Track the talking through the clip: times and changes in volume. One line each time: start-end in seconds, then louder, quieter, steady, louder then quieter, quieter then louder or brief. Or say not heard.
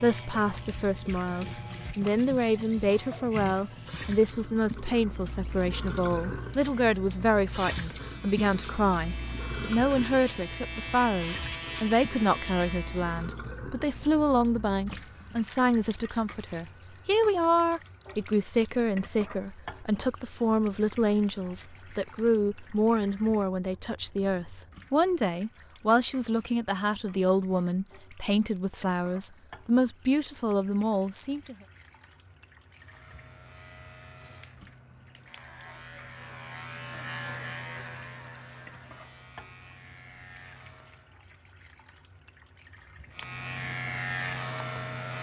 0.0-31.6 steady.